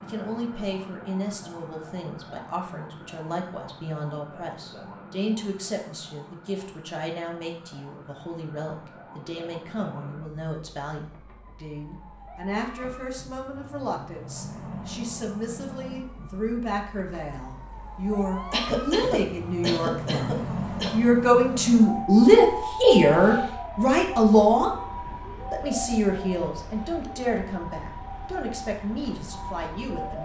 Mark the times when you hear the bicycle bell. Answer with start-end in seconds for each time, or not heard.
not heard.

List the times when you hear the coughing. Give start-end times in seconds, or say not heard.
18.5-21.0.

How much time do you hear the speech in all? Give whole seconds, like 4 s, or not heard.
30 s.